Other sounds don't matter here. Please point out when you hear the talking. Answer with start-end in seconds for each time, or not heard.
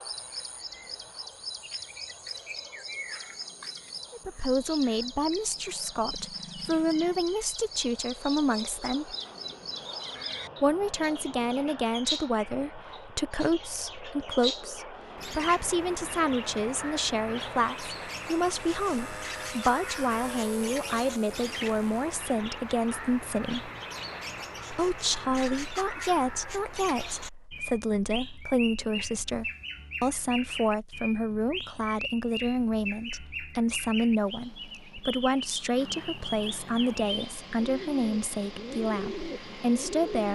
4.1-9.2, 10.6-23.7, 24.7-40.3.